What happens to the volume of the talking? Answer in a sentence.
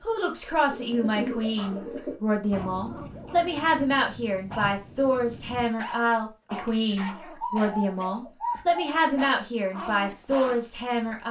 The volume of the talking stays about the same.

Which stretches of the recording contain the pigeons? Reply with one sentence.
You can hear the pigeons from 0.7 to 2.1 s and from 7.4 to 8.8 s.